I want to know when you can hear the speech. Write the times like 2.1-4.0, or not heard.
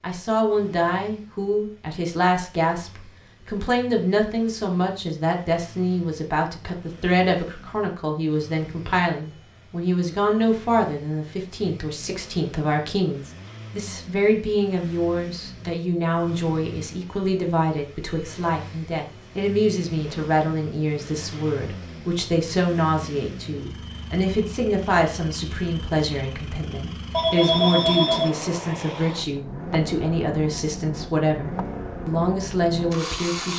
0.0-33.5.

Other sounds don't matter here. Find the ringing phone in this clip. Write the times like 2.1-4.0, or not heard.
27.1-28.5.